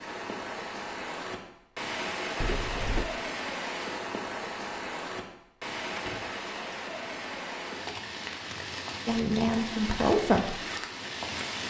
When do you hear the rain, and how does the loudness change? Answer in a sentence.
The rain can be heard from 0.0 to 11.6 s, at a steady volume.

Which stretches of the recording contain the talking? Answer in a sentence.
You can hear the talking from 9.1 to 10.6 s.